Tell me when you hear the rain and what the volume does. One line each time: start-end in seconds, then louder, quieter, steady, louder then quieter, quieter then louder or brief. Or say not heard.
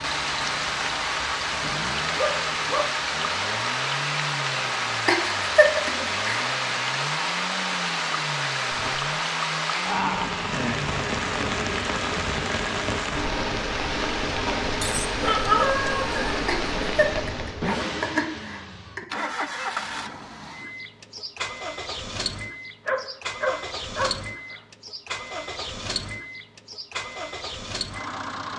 0.0-17.8 steady.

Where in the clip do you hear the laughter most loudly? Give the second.
6 s.